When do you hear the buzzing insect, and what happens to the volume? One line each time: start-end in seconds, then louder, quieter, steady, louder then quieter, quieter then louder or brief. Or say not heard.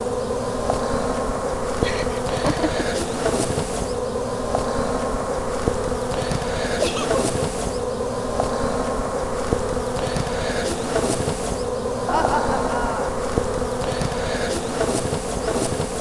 0.0-15.9 steady.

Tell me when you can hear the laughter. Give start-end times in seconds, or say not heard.
1.8-2.9, 6.8-7.2, 12.1-13.1.